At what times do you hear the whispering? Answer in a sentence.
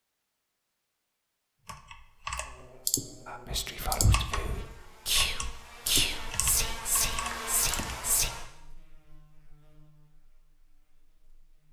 You can hear the whispering from 3.2 to 8.3 s.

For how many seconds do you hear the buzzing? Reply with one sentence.
The buzzing can be heard for 9 seconds in total.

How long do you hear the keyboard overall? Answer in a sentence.
The keyboard can be heard for 6 seconds in total.